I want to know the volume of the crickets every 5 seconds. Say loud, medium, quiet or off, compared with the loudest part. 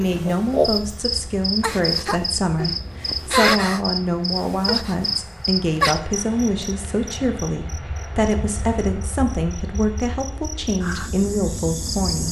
loud, medium, medium.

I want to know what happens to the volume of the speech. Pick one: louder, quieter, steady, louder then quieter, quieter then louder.
steady.